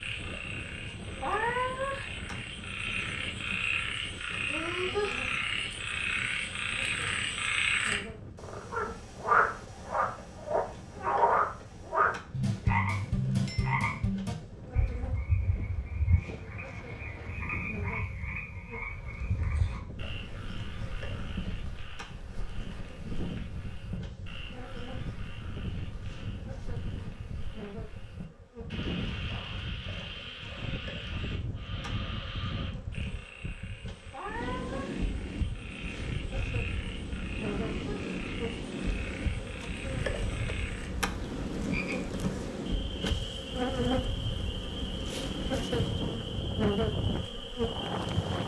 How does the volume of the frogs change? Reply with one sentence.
The volume of the frogs goes down.